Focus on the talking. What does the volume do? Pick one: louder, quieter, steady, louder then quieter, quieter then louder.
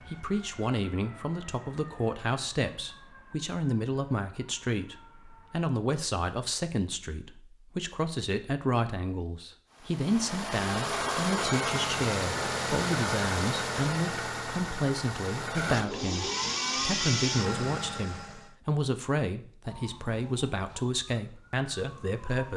steady.